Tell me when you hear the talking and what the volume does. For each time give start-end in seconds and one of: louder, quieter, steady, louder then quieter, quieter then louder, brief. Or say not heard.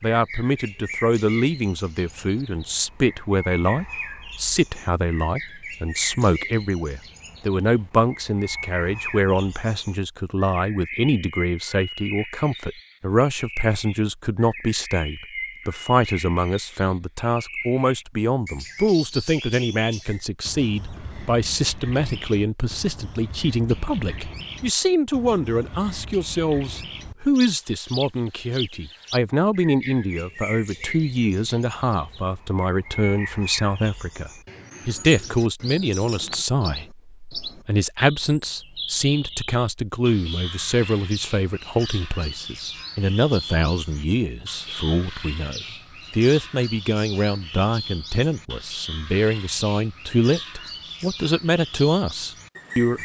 0.0-52.9 steady.